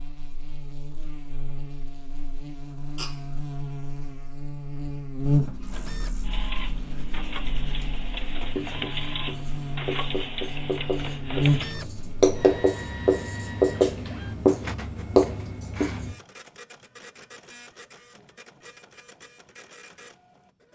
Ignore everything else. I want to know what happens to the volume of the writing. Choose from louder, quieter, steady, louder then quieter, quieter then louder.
louder.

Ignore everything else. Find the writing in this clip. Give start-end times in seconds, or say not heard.
5.2-16.1.